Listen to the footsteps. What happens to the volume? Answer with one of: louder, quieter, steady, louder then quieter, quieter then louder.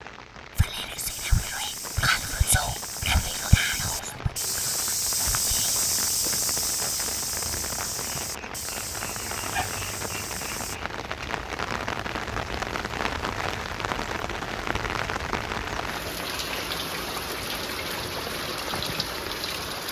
louder then quieter.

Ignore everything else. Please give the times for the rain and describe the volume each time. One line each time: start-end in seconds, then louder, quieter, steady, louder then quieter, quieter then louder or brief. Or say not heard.
0.0-19.8 louder.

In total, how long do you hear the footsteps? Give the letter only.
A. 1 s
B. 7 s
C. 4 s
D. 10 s
D.